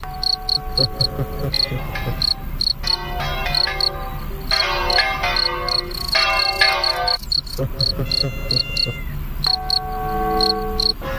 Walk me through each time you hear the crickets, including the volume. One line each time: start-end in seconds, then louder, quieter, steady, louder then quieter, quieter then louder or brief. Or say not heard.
0.0-11.1 steady.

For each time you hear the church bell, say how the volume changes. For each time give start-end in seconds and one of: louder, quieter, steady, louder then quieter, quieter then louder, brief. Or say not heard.
0.0-7.2 louder
9.4-11.1 brief.